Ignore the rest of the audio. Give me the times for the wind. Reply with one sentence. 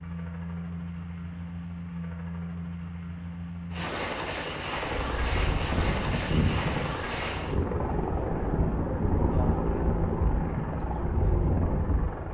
You can hear the wind from 4.8 to 12.3 s.